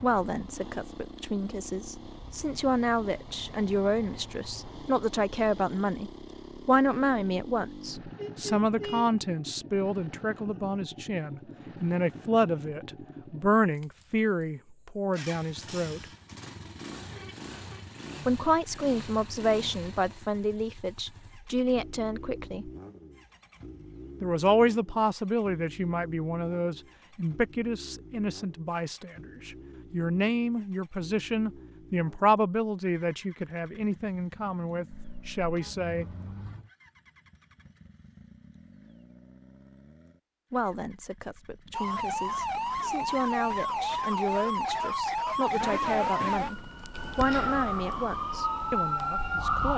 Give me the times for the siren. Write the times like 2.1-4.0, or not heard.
41.7-49.7.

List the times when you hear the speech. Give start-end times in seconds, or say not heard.
0.0-16.1, 18.2-22.7, 24.2-36.0, 40.5-49.7.